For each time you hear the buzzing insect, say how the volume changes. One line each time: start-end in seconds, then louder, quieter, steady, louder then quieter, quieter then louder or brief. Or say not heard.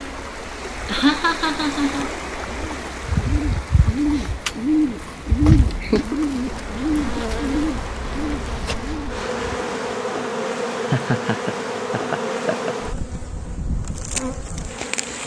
0.0-15.2 louder.